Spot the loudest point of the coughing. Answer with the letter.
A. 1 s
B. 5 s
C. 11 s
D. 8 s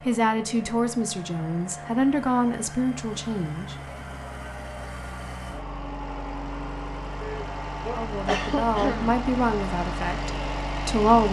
D.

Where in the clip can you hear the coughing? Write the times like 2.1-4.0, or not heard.
7.2-9.2.